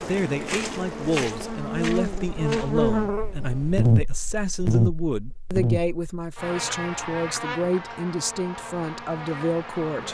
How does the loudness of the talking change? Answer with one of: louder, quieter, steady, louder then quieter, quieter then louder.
steady.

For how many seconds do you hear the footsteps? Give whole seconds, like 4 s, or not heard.
3 s.